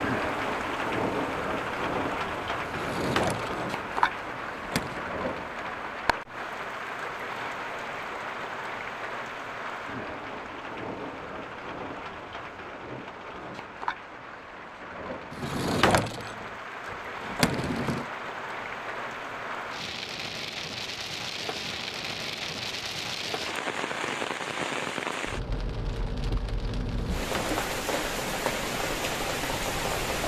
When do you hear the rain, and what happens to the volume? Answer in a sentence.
You can hear the rain from 0.0 to 30.2 s, getting quieter then louder.